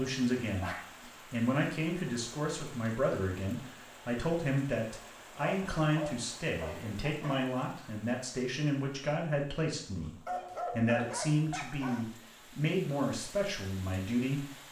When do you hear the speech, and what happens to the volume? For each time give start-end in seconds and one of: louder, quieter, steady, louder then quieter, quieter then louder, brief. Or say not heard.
0.0-14.4 steady.